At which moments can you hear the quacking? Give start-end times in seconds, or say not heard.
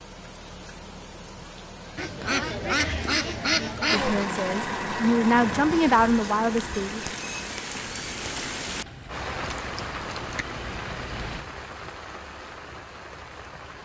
1.9-4.2.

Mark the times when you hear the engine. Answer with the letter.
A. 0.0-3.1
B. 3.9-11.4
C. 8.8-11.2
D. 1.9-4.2
B.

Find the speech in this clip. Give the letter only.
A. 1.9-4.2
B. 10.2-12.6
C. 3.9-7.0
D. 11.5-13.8
C.